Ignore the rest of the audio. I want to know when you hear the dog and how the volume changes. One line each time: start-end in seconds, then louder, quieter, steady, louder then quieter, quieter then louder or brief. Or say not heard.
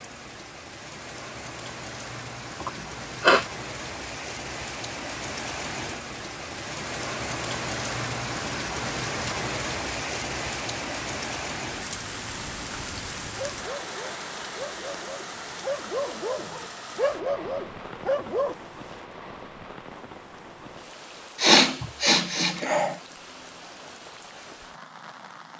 13.2-18.6 louder.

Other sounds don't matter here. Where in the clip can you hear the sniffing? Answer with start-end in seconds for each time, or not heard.
2.6-3.5, 21.4-22.9.